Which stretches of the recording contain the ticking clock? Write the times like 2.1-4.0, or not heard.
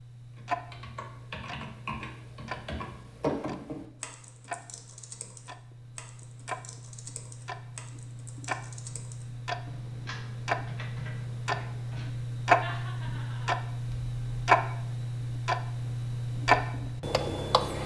0.0-17.8.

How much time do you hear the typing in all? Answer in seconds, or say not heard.
12 s.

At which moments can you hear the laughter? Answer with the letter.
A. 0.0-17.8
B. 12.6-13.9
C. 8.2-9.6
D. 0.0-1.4
B.